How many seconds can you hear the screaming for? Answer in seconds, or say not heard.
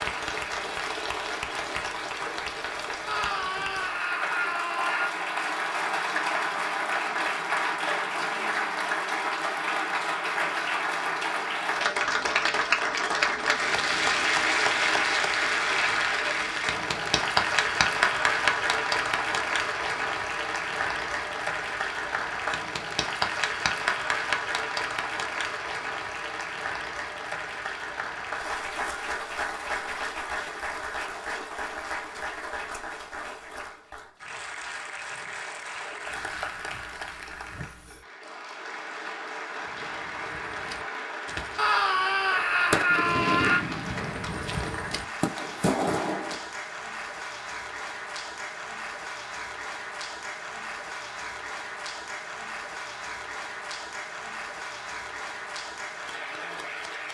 4 s.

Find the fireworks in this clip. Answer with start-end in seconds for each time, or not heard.
39.6-46.5.